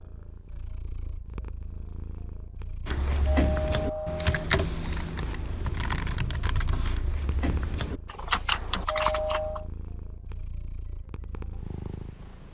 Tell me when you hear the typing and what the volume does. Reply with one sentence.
The typing can be heard from 2.9 to 9.6 s, getting quieter then louder.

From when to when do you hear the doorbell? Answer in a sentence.
The doorbell can be heard from 2.9 to 4.5 s and from 8.5 to 9.7 s.